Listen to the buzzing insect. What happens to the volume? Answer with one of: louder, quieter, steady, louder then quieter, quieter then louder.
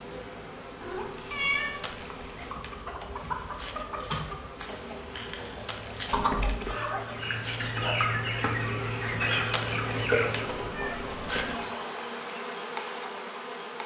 louder.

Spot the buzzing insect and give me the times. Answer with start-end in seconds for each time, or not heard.
0.0-13.8.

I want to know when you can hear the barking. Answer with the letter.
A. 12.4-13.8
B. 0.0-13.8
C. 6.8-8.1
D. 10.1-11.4
C.